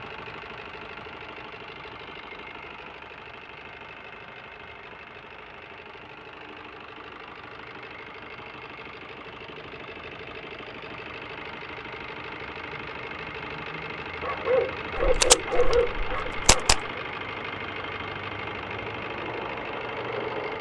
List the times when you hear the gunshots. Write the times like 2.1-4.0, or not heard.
15.0-16.9.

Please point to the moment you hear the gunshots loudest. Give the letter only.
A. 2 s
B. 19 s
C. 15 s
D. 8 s
C.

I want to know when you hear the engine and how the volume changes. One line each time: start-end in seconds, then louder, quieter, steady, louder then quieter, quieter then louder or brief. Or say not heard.
0.0-20.5 louder.